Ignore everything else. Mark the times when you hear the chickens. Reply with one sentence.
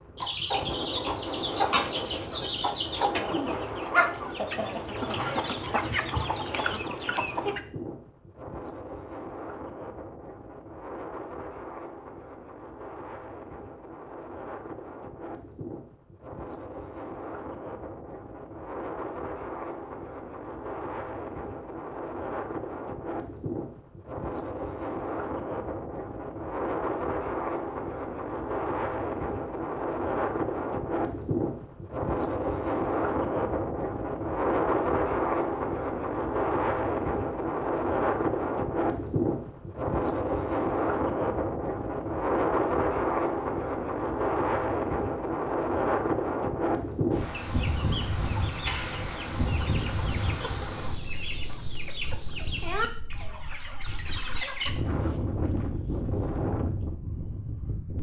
You can hear the chickens from 0.1 to 7.6 s and from 47.3 to 54.7 s.